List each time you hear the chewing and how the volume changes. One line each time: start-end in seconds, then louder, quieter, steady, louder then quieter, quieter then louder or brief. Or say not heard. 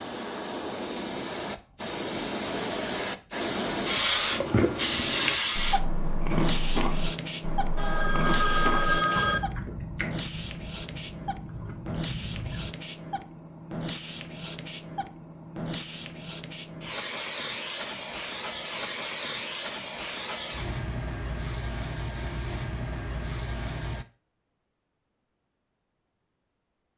4.3-12.7 quieter.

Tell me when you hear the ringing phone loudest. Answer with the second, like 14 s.
9 s.